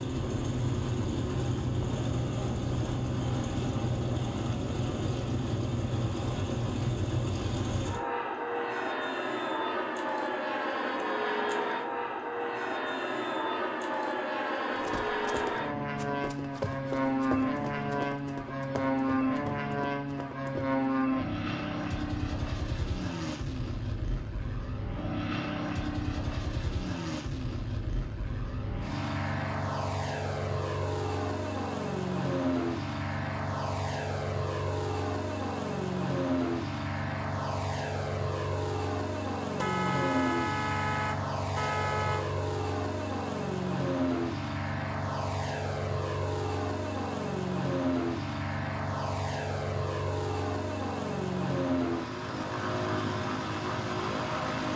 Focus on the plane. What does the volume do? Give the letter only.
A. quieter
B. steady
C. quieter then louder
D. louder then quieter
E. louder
B.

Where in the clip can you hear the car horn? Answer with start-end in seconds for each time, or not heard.
39.5-42.2.